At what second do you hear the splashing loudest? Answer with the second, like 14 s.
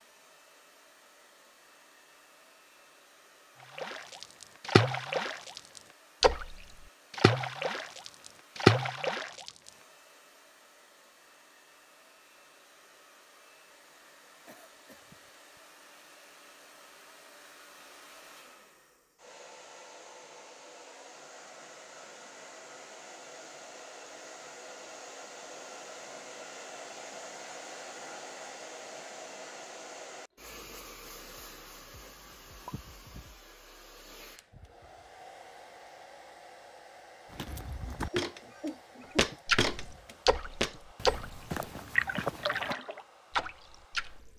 9 s.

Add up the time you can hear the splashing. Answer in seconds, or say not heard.
11 s.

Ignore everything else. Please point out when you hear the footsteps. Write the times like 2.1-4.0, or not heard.
37.3-42.8.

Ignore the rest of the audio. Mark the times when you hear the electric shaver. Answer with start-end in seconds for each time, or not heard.
not heard.